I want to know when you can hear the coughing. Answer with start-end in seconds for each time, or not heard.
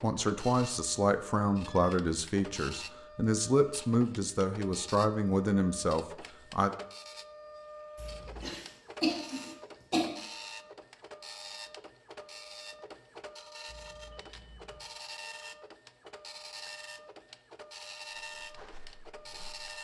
8.0-10.1.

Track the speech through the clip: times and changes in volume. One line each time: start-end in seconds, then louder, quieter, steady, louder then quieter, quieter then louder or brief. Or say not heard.
0.0-6.8 steady.